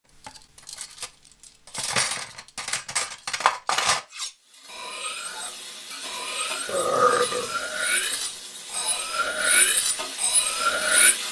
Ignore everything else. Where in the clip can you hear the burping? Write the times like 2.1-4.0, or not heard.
6.7-7.5.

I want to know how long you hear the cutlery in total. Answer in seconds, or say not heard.
11 s.